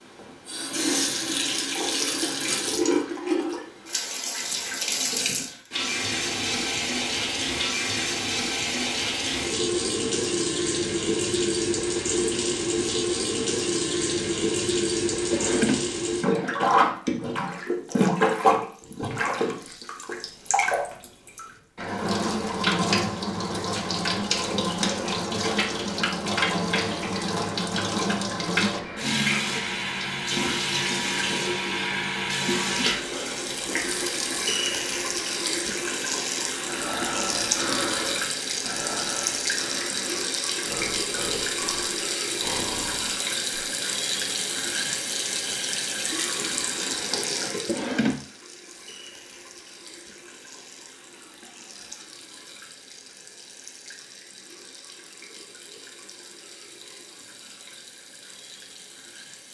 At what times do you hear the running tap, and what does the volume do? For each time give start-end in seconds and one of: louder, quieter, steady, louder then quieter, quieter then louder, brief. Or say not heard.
0.1-59.4 quieter.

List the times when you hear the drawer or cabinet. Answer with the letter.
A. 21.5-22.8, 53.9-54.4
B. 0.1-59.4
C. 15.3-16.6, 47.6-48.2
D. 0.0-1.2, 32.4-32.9
C.